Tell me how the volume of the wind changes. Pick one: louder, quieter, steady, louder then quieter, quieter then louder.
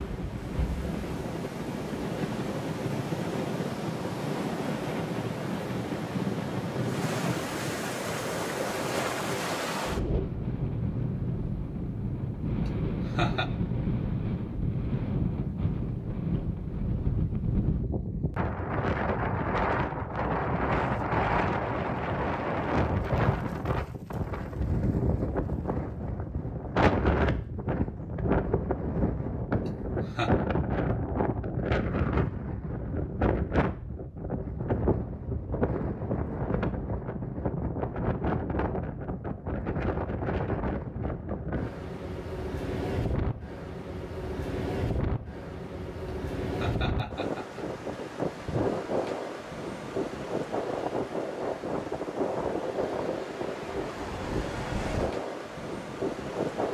steady.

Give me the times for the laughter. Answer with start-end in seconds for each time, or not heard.
12.7-13.5, 29.6-30.3, 46.5-47.6.